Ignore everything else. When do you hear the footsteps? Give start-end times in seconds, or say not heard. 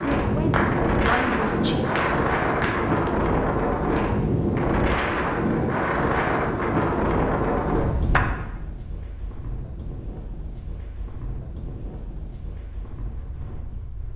not heard.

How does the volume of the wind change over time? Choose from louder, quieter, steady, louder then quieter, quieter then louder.
quieter.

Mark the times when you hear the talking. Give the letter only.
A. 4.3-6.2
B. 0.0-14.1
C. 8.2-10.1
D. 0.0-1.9
D.